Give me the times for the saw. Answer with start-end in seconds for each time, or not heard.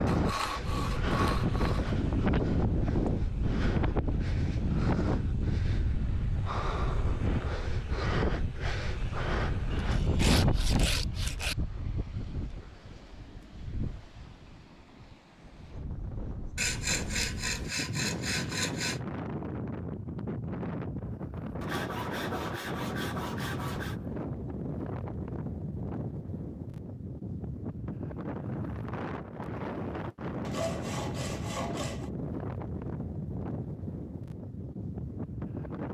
0.1-1.9, 9.7-11.6, 16.6-19.0, 21.6-24.0, 30.4-32.1.